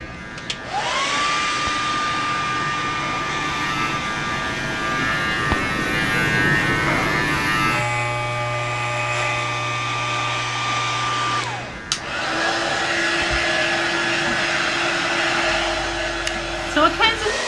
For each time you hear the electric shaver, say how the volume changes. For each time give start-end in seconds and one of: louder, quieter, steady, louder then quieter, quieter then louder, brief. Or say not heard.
0.0-17.3 louder then quieter.